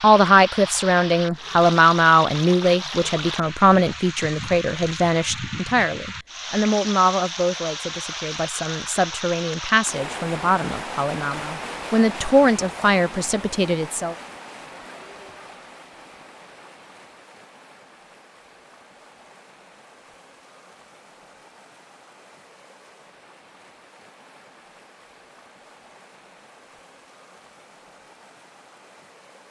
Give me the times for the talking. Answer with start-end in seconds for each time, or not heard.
0.0-14.2.